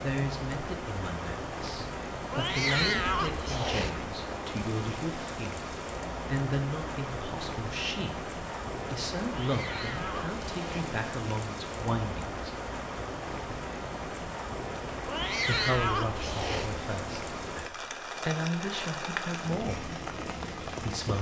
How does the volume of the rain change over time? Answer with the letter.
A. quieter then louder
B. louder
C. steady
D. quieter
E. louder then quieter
C.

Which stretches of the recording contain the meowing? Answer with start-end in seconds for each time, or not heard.
2.3-4.0, 9.2-10.8, 15.1-16.8.